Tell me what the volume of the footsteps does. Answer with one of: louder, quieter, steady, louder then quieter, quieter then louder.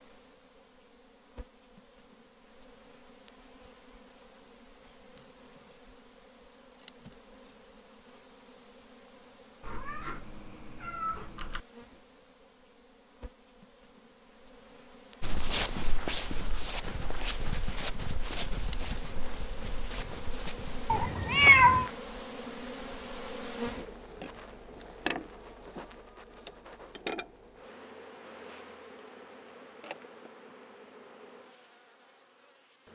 quieter.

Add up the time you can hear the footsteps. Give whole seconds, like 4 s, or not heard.
7 s.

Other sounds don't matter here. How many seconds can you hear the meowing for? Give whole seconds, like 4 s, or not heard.
3 s.